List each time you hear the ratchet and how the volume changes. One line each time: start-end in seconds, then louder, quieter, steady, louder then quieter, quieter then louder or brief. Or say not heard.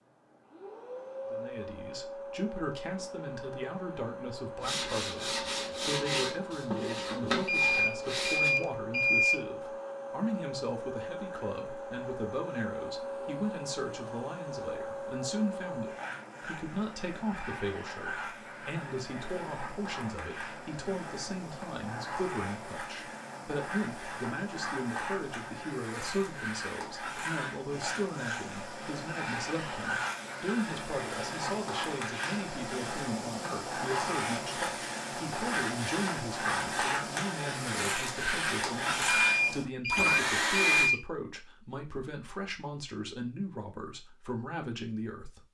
not heard.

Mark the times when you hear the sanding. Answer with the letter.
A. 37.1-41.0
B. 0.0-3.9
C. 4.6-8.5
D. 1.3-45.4
C.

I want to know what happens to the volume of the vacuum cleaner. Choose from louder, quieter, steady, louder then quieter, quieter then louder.
louder.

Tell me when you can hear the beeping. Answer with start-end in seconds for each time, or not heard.
7.5-9.4, 39.1-41.0.